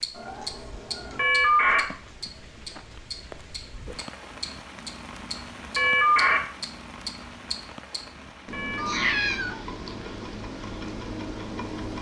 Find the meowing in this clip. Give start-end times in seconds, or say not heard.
0.1-1.2, 8.8-9.6.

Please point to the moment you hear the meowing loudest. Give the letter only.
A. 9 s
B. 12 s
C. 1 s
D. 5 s
A.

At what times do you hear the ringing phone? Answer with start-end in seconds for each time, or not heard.
1.1-1.8, 5.8-6.4, 8.5-9.2.